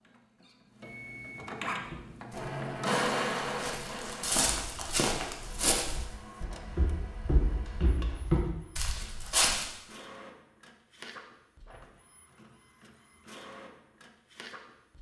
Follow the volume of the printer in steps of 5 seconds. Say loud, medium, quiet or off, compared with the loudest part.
loud, quiet, quiet.